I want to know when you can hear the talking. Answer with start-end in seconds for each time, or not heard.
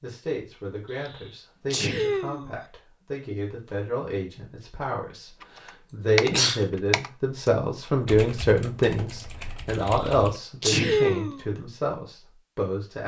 0.0-13.0.